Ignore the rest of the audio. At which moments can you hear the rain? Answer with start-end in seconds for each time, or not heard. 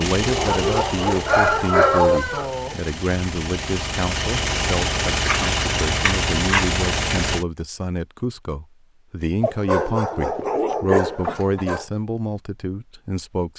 not heard.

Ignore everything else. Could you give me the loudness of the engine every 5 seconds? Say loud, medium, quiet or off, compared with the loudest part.
medium, loud, off.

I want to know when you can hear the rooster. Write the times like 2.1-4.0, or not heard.
1.2-2.8.